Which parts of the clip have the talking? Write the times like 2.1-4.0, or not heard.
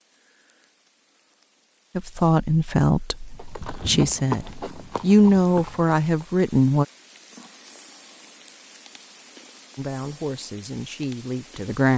1.9-6.8, 9.8-11.9.